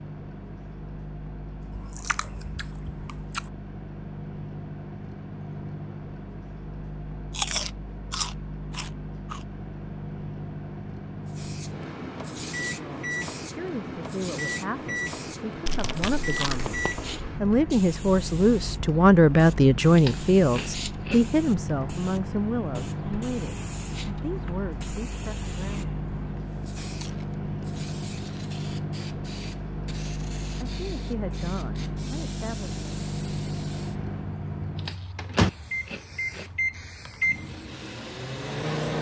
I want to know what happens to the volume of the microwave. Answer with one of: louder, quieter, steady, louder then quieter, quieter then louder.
louder.